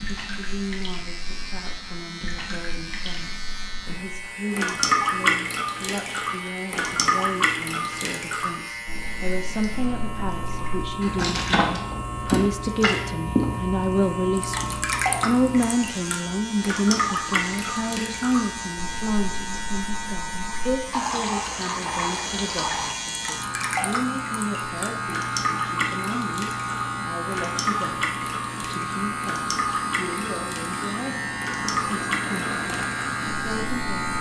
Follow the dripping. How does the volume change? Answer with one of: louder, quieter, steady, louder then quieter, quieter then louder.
steady.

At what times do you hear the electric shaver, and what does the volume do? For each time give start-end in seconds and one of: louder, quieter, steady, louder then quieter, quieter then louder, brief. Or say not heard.
0.0-34.1 louder.